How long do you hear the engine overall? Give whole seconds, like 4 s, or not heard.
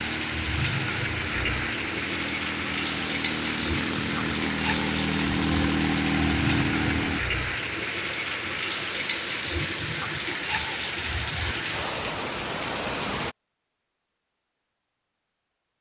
7 s.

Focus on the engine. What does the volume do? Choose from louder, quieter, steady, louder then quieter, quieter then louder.
louder.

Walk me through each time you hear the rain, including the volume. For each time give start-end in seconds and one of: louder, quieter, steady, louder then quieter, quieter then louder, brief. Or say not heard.
0.0-13.3 steady.